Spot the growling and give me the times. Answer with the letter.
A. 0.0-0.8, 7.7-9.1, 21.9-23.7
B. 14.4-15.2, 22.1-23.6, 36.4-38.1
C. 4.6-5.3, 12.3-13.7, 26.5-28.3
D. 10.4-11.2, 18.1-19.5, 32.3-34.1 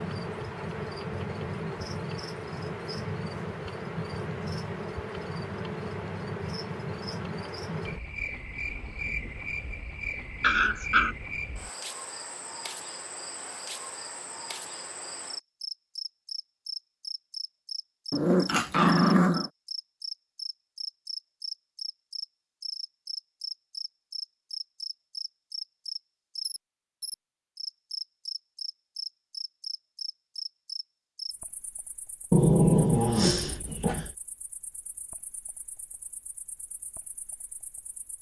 D.